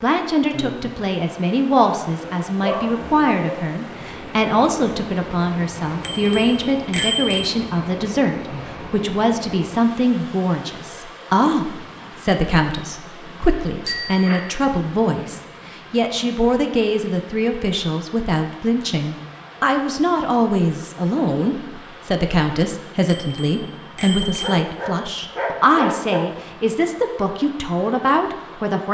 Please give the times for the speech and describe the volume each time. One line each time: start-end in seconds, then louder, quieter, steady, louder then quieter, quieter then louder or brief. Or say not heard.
0.0-28.8 steady.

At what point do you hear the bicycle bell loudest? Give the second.
7 s.